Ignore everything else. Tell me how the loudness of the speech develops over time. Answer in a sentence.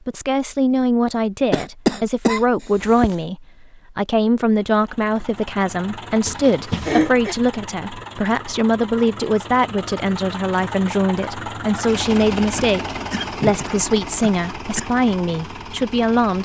The loudness of the speech stays about the same.